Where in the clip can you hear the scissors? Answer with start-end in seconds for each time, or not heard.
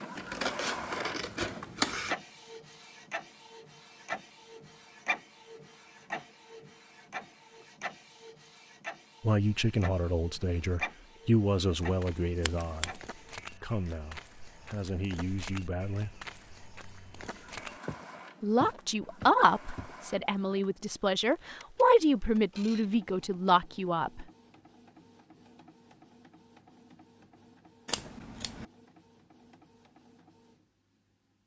0.1-2.1, 12.4-13.0, 27.9-28.6.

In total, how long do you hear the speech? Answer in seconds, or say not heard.
12 s.